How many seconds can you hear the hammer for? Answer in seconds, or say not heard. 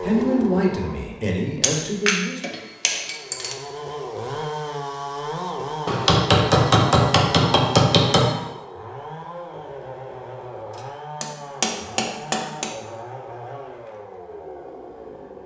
6 s.